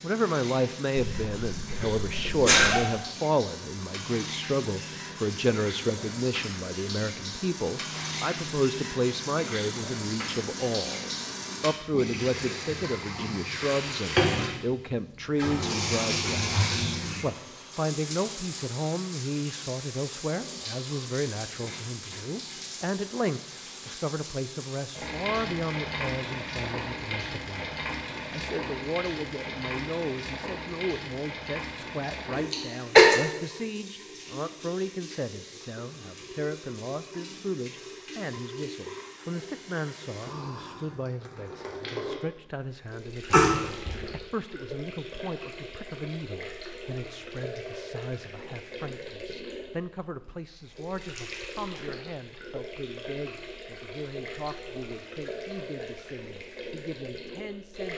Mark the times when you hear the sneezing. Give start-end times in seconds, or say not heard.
0.9-2.8, 32.5-33.1, 43.3-44.0.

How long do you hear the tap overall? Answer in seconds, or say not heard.
58 s.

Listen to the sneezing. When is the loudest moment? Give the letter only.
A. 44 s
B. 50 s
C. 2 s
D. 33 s
D.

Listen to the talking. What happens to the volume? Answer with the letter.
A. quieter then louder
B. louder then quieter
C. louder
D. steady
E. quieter
E.